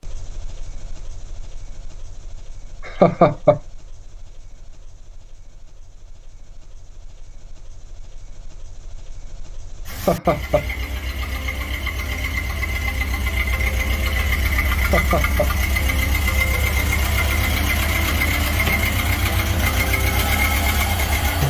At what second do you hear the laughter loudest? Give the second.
3 s.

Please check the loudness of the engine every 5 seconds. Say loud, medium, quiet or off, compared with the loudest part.
quiet, quiet, medium, loud, loud.